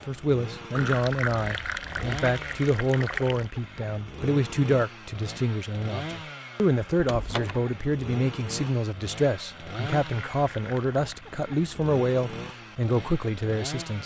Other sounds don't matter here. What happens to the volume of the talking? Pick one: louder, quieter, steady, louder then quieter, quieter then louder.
steady.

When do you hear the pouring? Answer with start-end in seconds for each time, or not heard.
0.8-3.5, 9.9-11.2.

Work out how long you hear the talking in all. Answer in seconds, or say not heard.
14 s.